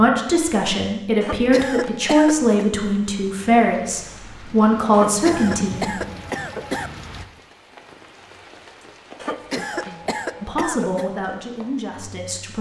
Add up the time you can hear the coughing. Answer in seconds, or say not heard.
5 s.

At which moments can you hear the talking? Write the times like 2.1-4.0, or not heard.
0.0-6.0, 10.4-12.5.